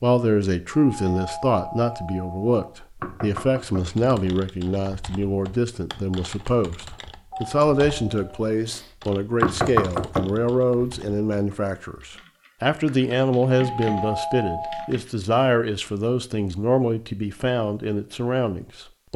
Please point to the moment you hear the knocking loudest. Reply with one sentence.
The volume of the knocking peaks at 10 seconds.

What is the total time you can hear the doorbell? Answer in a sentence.
You can hear the doorbell for 5 seconds altogether.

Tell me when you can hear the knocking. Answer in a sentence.
The knocking can be heard from 3.0 to 4.0 s, from 9.4 to 10.4 s and from 13.6 to 15.1 s.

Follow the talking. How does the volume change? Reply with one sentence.
The volume of the talking stays about the same.